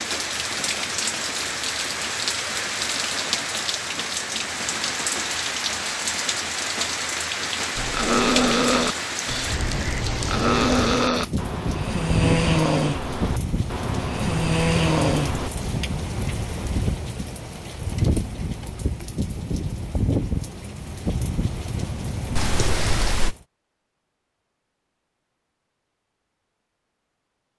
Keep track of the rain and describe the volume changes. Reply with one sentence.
The loudness of the rain stays about the same.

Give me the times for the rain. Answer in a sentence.
The rain can be heard from 0.0 to 23.4 s.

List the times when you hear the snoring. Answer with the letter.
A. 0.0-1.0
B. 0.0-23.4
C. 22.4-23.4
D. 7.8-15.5
D.